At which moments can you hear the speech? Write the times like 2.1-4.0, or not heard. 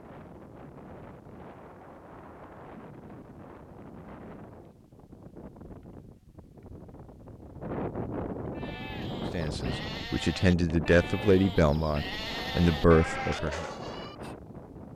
9.3-13.7.